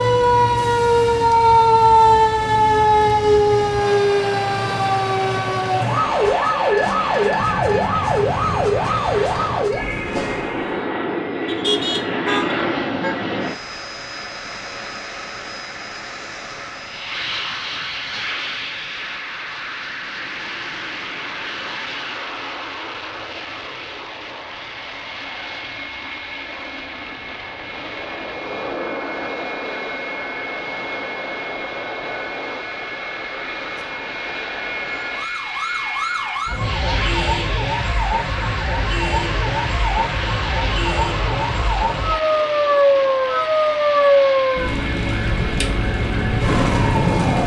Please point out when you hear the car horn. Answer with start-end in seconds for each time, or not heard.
11.4-13.2.